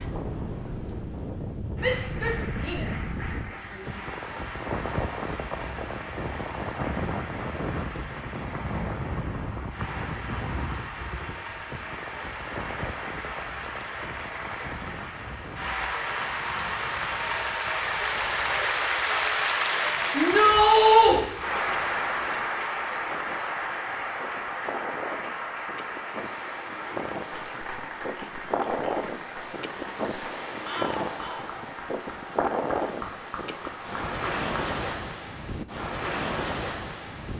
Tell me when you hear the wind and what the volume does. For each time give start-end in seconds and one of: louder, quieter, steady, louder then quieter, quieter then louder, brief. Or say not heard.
0.0-37.3 quieter then louder.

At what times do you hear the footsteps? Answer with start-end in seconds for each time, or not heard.
not heard.